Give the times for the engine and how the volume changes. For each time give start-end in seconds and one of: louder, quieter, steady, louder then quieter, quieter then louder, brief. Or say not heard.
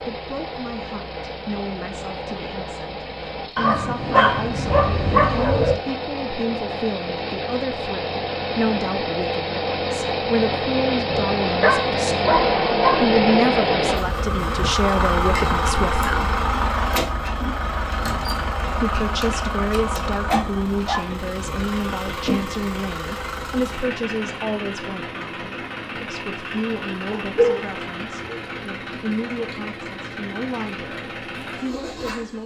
0.0-32.4 louder then quieter.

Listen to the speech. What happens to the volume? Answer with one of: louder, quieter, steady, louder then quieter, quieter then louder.
louder then quieter.